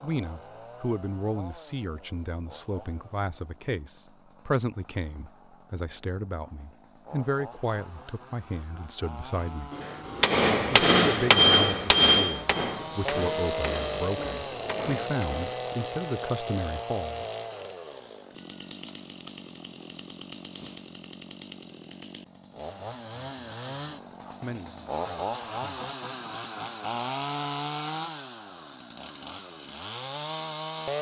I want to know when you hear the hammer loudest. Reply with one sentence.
The volume of the hammer peaks at 11 seconds.